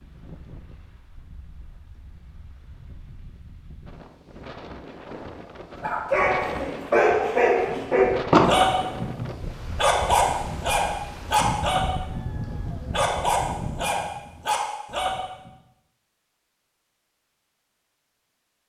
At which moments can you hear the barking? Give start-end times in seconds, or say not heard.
5.8-15.5.